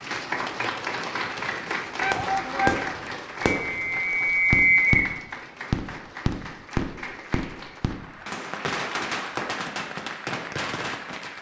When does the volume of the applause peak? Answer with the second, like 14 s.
1 s.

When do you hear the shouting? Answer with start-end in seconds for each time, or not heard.
2.0-2.9.